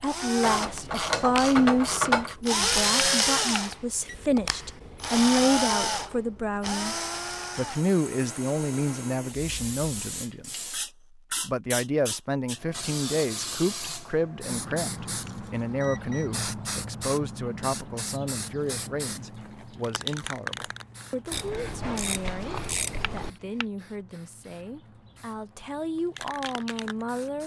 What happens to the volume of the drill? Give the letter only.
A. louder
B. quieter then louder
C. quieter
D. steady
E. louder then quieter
E.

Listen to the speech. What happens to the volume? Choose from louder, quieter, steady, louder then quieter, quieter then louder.
quieter.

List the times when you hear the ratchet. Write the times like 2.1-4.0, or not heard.
0.4-2.4, 21.3-23.3.